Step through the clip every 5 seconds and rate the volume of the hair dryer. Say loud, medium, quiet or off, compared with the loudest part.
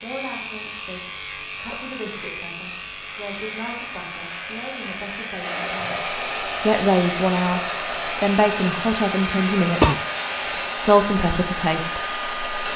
quiet, loud, loud.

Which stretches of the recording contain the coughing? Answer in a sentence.
You can hear the coughing from 9.3 to 10.0 s.